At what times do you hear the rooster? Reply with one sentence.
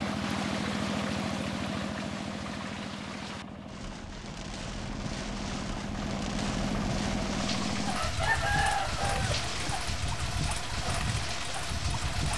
The rooster can be heard from 7.9 to 9.8 s.